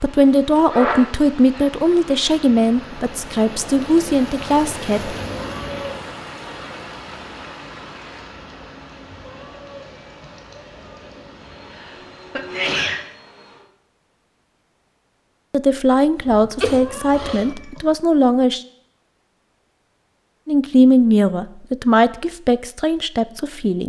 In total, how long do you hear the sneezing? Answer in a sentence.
The sneezing can be heard for 4 seconds in total.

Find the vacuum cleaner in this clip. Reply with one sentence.
The vacuum cleaner can be heard from 11.3 to 13.7 s.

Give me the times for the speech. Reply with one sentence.
The speech can be heard from 0.0 to 5.2 s, from 15.5 to 18.6 s and from 20.4 to 23.8 s.